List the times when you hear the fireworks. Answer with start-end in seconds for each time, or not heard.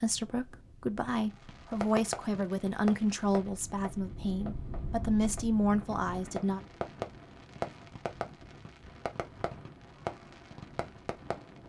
1.1-11.6.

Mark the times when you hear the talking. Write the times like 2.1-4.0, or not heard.
0.0-6.6.